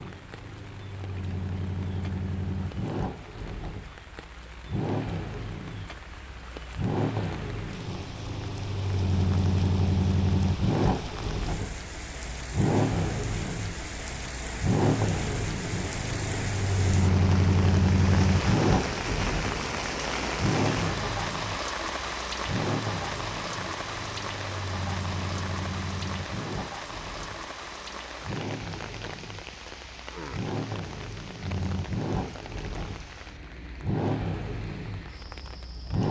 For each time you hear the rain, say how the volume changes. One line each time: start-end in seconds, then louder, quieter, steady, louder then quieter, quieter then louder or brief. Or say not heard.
0.0-36.0 louder then quieter.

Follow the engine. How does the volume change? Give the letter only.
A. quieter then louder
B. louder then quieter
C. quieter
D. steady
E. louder
B.